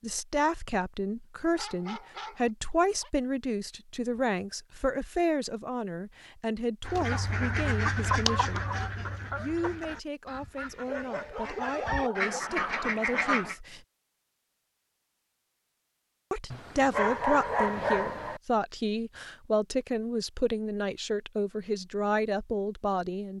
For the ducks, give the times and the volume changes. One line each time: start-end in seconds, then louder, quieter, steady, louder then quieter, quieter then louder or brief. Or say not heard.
6.8-13.6 quieter then louder.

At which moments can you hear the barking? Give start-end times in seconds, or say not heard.
1.6-3.1, 10.8-12.4, 16.5-18.4.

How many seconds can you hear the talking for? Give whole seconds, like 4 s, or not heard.
20 s.